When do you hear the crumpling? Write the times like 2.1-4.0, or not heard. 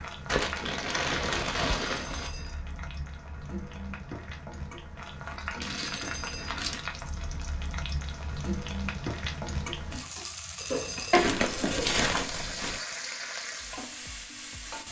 0.2-2.3, 5.6-6.8, 11.1-12.8.